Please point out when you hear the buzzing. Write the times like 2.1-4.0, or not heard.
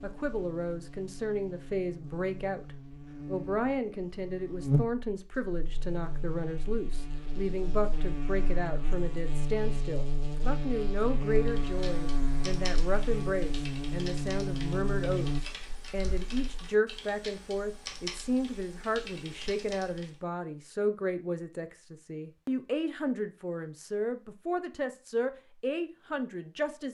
0.0-15.4.